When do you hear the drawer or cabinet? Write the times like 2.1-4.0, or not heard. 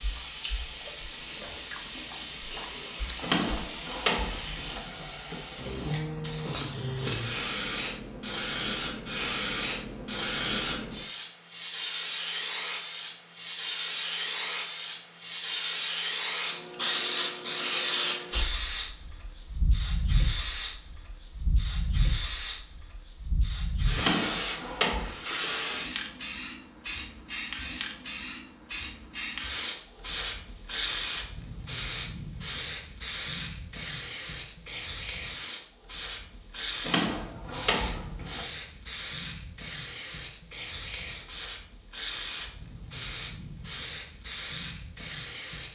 3.2-4.8, 23.9-25.1, 36.8-38.5.